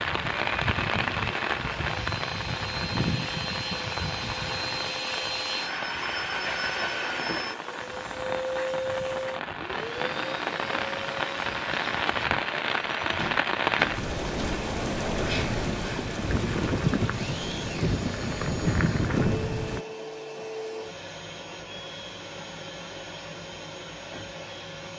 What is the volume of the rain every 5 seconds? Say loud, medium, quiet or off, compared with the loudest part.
loud, medium, loud, loud, off.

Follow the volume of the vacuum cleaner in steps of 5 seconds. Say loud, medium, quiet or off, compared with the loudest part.
loud, loud, medium, medium, medium.